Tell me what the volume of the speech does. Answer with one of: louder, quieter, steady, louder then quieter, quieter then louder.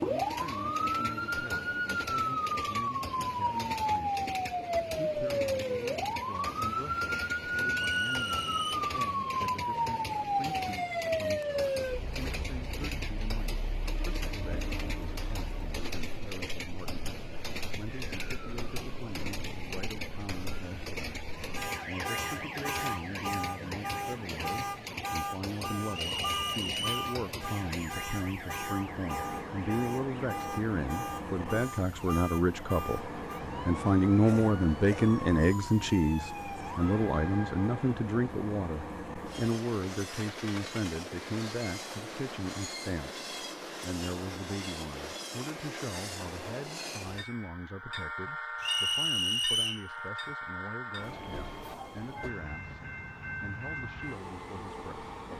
louder then quieter.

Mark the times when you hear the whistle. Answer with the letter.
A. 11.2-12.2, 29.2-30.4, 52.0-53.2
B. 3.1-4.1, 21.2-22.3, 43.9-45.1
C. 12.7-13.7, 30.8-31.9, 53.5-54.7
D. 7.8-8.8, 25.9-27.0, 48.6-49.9
D.